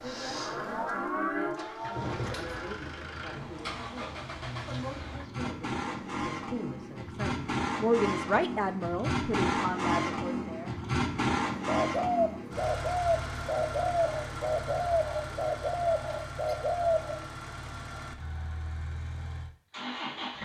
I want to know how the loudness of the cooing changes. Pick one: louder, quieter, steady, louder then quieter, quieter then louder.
steady.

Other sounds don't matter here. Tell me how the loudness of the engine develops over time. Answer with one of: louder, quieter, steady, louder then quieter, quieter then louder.
louder then quieter.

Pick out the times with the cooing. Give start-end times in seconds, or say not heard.
11.7-17.2.